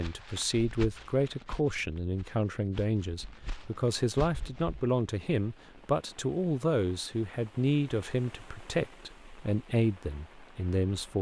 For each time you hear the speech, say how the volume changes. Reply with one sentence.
The speech can be heard from 0.0 to 11.1 s, at a steady volume.